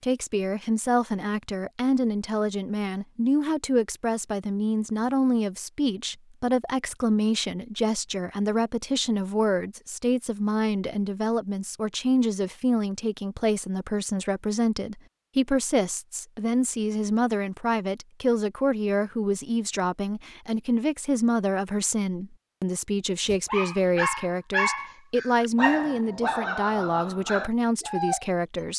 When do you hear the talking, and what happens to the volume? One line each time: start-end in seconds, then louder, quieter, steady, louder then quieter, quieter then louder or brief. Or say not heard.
0.0-28.7 steady.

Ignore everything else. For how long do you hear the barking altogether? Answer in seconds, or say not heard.
5 s.